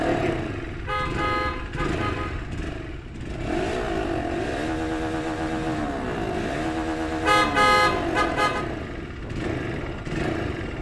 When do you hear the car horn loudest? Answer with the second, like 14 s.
8 s.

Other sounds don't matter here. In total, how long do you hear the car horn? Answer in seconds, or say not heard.
3 s.